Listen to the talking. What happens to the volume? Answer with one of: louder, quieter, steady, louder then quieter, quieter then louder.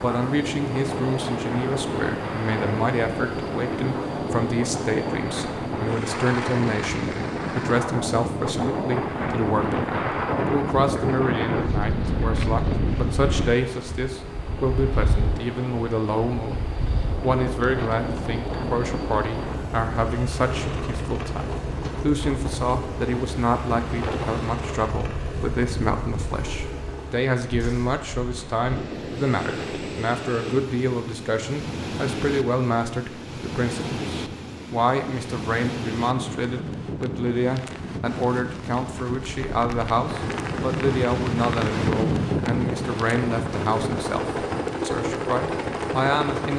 steady.